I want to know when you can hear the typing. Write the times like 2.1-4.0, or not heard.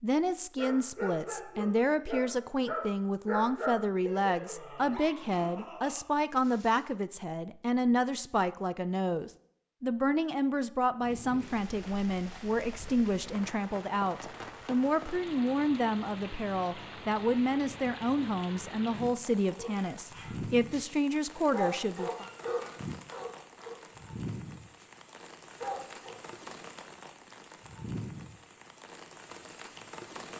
not heard.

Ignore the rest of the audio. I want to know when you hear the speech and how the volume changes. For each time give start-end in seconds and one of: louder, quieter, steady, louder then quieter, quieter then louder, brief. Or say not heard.
0.0-22.2 steady.